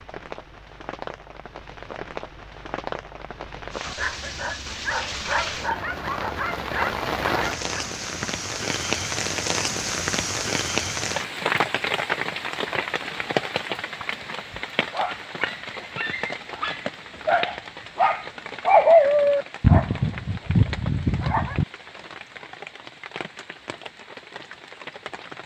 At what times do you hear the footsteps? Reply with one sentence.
You can't hear the footsteps here.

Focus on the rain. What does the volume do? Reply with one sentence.
The volume of the rain goes up, then down.